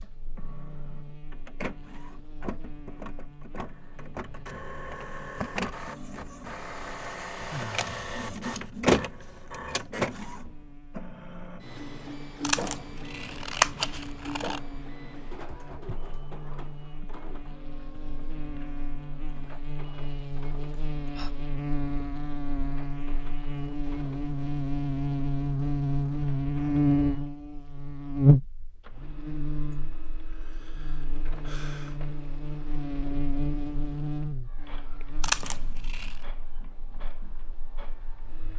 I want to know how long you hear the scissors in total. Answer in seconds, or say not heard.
3 s.